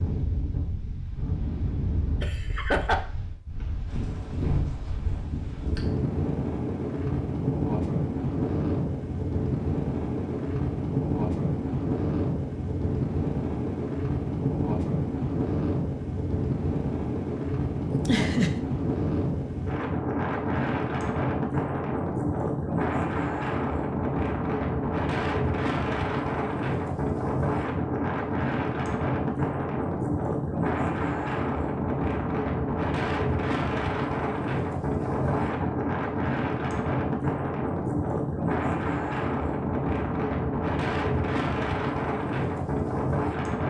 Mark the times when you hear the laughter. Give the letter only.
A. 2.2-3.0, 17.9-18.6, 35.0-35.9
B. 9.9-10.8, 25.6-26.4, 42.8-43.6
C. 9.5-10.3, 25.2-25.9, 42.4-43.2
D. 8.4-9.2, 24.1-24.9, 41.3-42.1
A.